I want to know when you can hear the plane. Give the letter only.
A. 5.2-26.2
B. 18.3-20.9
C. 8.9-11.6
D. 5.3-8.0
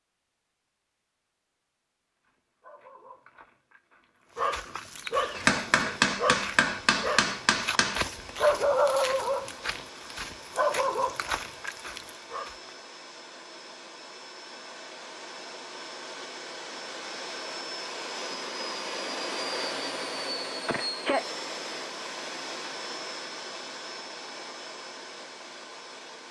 A.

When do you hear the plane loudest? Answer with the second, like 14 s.
21 s.